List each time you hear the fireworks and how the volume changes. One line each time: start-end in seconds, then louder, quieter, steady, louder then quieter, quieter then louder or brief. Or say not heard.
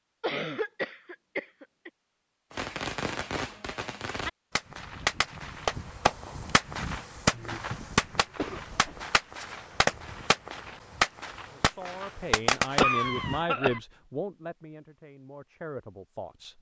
2.5-13.4 louder.